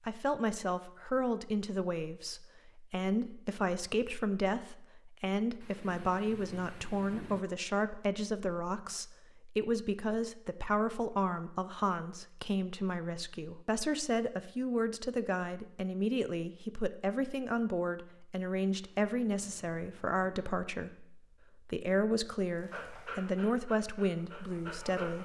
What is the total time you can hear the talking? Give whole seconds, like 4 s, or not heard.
25 s.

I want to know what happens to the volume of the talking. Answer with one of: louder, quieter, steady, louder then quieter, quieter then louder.
steady.